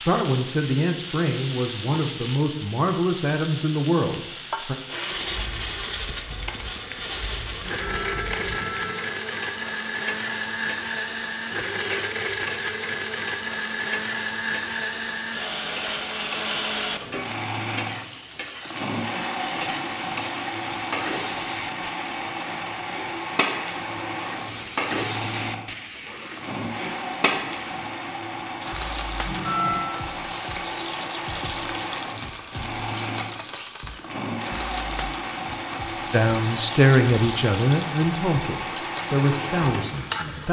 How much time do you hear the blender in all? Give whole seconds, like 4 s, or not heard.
35 s.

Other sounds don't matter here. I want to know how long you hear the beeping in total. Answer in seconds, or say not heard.
2 s.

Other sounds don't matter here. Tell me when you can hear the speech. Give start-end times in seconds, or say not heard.
0.1-4.8, 36.1-40.4.